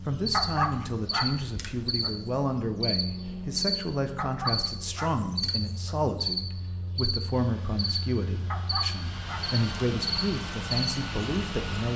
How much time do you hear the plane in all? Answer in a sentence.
You can hear the plane for 5 seconds altogether.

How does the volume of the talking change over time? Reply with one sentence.
The loudness of the talking stays about the same.